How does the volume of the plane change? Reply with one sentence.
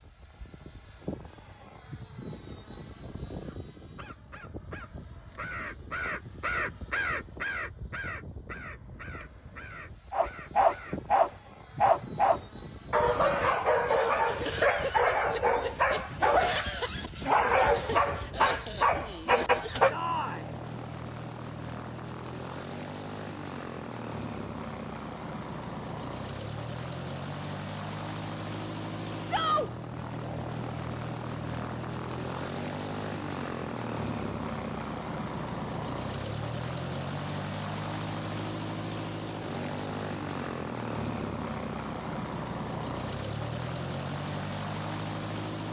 The loudness of the plane goes up.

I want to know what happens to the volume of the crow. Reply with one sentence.
The volume of the crow goes up, then down.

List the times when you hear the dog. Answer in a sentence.
The dog can be heard from 10.1 to 19.9 s.